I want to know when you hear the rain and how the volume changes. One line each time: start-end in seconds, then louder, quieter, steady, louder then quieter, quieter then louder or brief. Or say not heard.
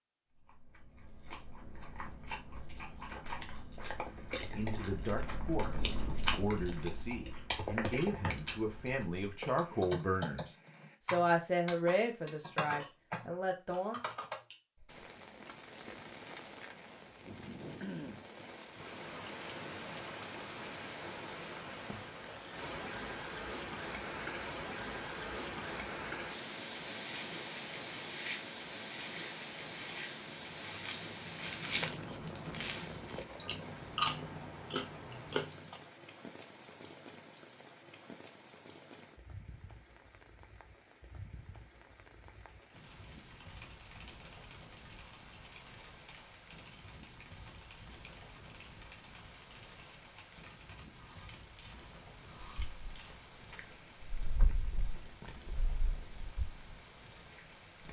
14.8-57.8 quieter.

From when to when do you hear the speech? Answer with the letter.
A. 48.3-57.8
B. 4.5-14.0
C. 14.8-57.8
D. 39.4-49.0
B.